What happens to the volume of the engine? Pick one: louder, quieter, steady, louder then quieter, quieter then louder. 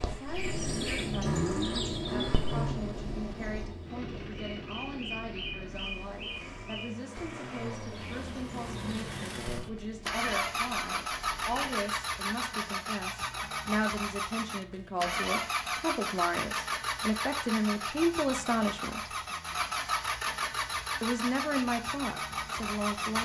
quieter then louder.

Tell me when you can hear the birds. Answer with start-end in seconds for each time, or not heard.
0.0-11.8.